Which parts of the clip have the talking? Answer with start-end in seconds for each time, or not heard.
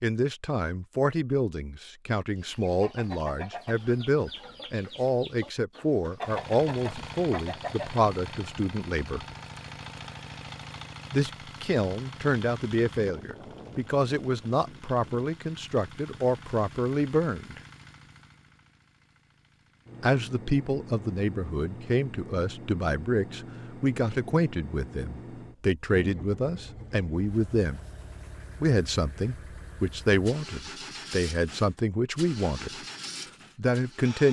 0.0-9.2, 11.1-17.6, 20.0-27.8, 28.6-32.8, 33.5-34.2.